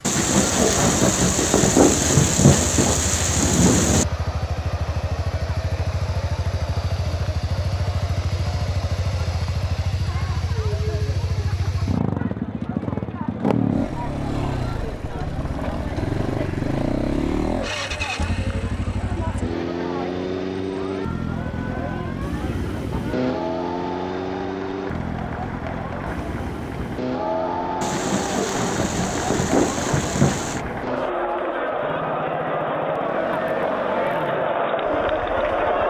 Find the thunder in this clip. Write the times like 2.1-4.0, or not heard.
0.0-4.0, 27.8-30.6.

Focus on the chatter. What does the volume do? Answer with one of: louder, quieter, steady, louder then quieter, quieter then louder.
louder.